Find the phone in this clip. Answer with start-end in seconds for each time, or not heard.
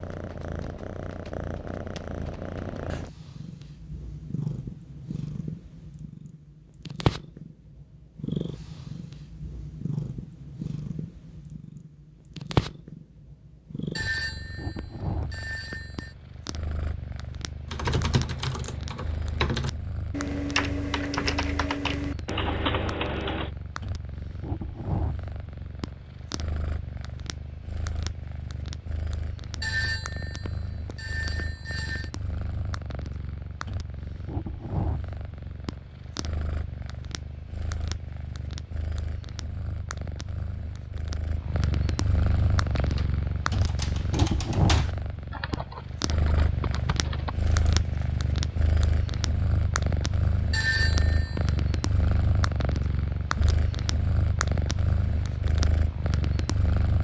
13.9-16.1, 29.6-32.1, 50.5-51.4.